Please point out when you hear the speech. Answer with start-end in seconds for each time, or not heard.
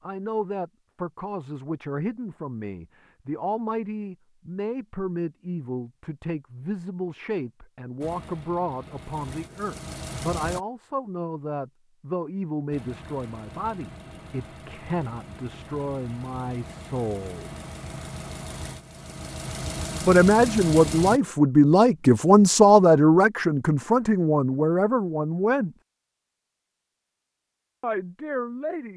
0.0-17.5, 20.0-25.8, 27.8-28.9.